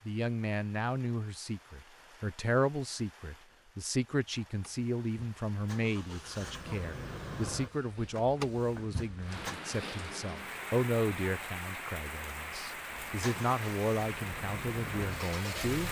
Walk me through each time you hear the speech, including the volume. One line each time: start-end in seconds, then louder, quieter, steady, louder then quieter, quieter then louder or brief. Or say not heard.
0.1-15.8 steady.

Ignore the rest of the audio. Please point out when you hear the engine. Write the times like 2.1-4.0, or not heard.
4.2-9.6, 13.1-15.8.